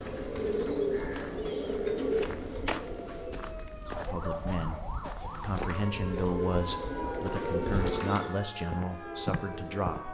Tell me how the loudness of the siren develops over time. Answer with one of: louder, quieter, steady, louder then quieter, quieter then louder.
steady.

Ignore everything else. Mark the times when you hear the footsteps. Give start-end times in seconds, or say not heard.
0.0-8.0, 8.7-10.0.